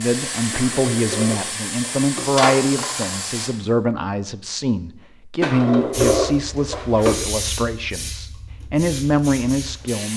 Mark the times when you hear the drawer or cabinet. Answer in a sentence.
You can hear the drawer or cabinet from 0.5 to 3.1 s and from 5.4 to 7.2 s.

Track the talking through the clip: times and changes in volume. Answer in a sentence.
You can hear the talking from 0.0 to 10.1 s, at a steady volume.